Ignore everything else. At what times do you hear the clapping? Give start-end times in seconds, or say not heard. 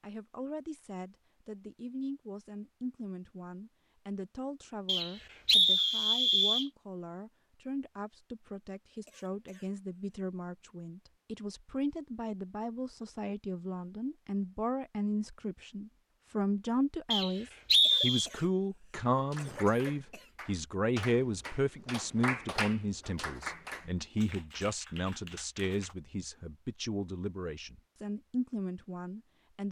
19.1-25.9.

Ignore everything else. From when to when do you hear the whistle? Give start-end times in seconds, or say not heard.
4.8-6.7, 17.1-18.3.